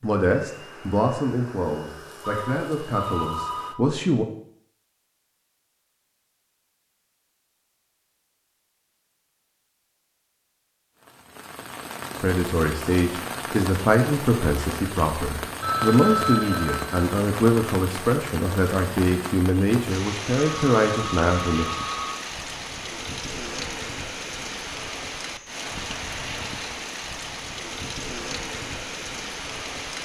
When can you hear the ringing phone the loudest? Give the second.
16 s.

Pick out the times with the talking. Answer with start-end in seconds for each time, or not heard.
0.0-4.2, 12.2-21.7.